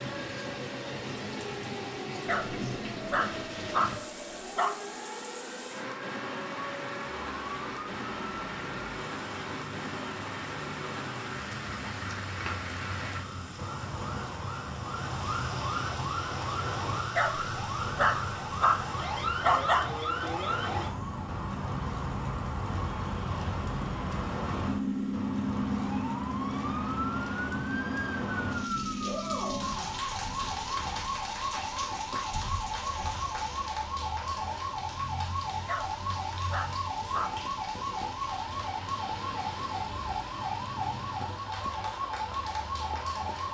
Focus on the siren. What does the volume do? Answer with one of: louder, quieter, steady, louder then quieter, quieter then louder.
louder.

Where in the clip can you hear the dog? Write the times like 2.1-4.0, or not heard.
2.2-4.8, 17.1-19.9, 35.6-37.4.